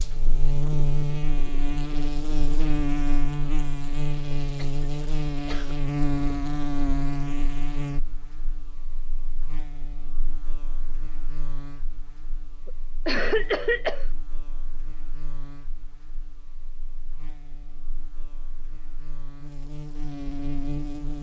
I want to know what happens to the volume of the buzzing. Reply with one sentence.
The volume of the buzzing goes down, then up.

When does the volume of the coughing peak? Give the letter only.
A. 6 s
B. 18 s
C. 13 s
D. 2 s
C.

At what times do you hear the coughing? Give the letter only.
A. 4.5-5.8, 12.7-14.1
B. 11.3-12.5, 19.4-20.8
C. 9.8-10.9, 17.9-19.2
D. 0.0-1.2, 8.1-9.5
A.